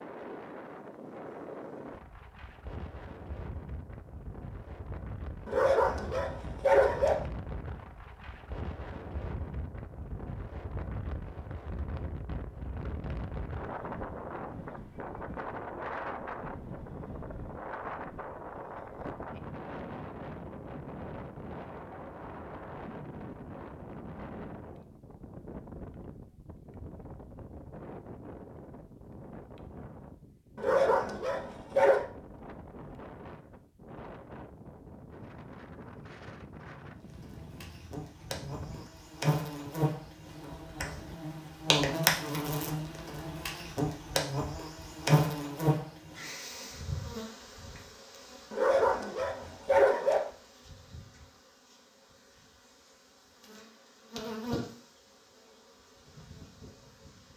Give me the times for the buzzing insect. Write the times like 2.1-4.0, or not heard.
37.1-57.3.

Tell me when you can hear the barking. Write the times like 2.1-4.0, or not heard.
5.5-7.2, 30.6-32.0, 48.5-50.3.